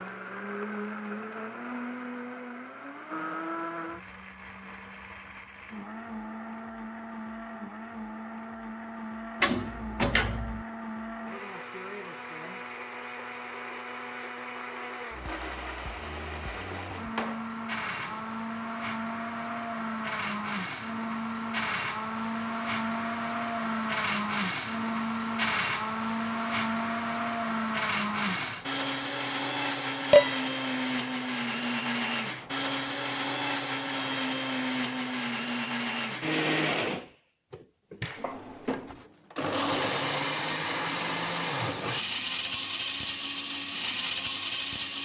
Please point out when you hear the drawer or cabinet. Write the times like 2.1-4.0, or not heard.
9.4-10.7, 16.7-18.4, 38.1-39.0.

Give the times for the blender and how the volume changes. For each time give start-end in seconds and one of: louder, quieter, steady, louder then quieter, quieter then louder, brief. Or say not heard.
0.0-44.9 louder.